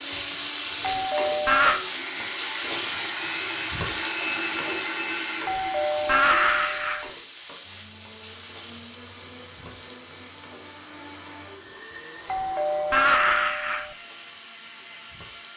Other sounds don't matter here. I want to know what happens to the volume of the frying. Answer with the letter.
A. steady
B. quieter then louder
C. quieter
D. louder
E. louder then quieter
C.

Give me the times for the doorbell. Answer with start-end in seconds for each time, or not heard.
0.8-1.8, 5.5-7.1, 12.2-13.9.